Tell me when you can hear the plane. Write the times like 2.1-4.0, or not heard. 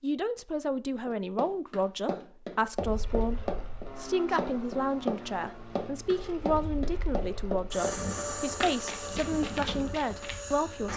2.8-10.9.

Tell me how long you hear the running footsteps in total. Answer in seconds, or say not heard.
9 s.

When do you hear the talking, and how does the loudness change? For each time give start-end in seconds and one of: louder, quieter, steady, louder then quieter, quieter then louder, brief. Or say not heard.
0.0-10.9 steady.